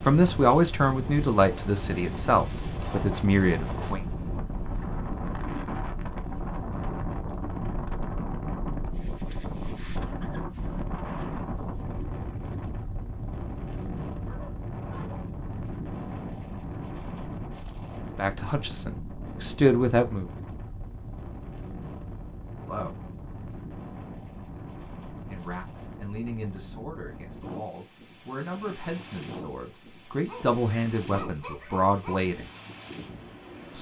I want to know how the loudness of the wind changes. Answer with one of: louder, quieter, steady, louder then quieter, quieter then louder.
quieter.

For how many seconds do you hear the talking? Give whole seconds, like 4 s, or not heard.
14 s.